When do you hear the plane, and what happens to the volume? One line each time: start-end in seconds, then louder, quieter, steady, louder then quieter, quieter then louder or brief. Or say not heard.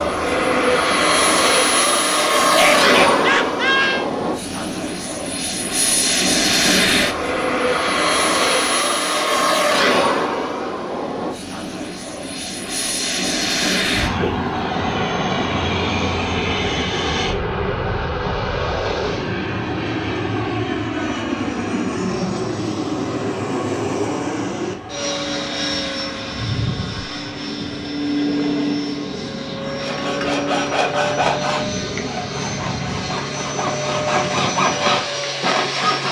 0.0-36.0 quieter.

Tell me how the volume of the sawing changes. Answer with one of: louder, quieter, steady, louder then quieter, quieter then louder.
quieter then louder.